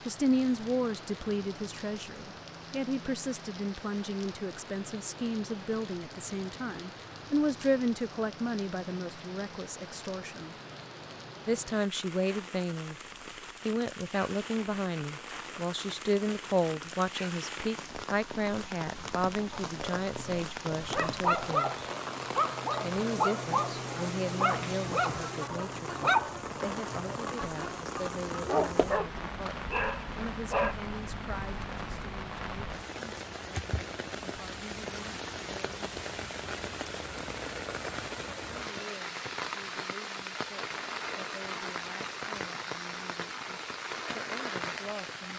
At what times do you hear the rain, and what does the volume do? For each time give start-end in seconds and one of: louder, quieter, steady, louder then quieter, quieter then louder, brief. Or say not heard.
0.0-45.3 louder.